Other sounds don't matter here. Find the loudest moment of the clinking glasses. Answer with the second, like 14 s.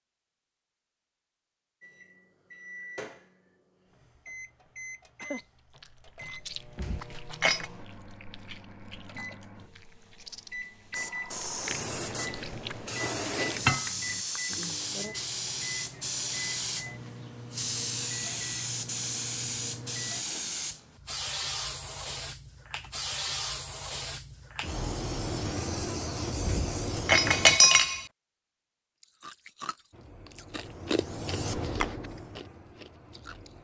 28 s.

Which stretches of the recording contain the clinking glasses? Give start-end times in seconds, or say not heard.
6.8-7.7, 13.6-14.2, 26.4-28.0.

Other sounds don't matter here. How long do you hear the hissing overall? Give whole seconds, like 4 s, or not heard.
20 s.